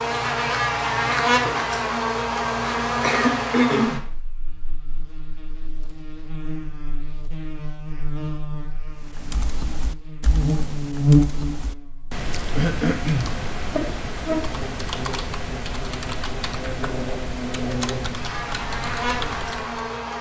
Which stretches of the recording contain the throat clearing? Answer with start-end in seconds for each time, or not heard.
3.0-4.0, 12.6-13.3.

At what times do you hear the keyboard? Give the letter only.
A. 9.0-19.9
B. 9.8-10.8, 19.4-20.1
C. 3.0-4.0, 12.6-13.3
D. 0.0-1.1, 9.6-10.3
A.